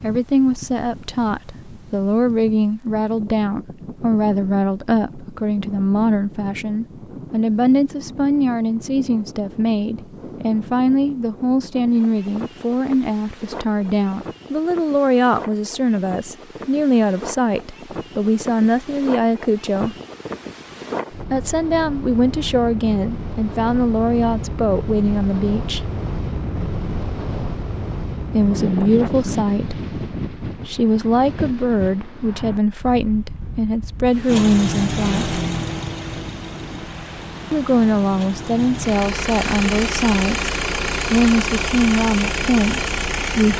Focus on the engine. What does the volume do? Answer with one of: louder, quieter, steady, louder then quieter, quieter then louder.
quieter then louder.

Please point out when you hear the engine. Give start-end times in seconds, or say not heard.
34.2-43.5.